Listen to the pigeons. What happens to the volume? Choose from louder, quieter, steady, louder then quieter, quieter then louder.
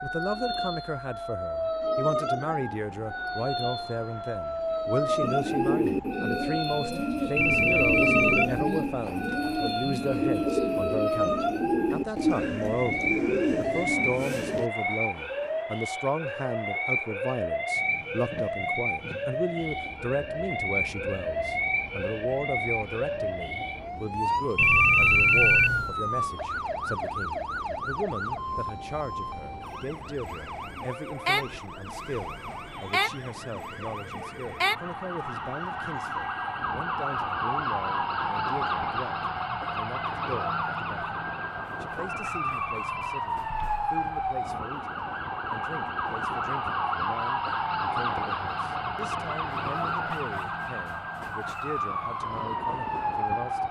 steady.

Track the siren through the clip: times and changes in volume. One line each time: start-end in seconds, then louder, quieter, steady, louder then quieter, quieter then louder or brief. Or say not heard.
0.0-53.6 steady.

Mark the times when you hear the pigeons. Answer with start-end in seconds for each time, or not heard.
5.2-14.7.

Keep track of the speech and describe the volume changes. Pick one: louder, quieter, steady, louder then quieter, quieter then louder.
quieter.